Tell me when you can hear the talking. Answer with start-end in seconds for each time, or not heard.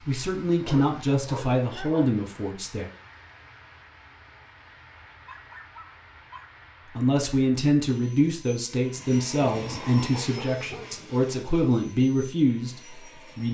0.1-2.9, 7.0-13.4.